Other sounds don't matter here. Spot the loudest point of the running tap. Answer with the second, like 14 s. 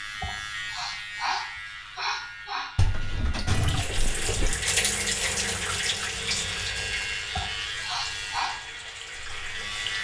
5 s.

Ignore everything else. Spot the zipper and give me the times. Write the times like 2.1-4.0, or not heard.
not heard.